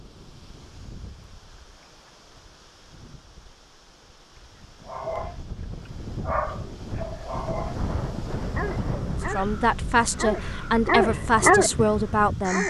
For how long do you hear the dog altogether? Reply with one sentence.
The dog can be heard for 8 seconds in total.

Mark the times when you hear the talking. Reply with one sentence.
The talking can be heard from 9.3 to 12.6 s.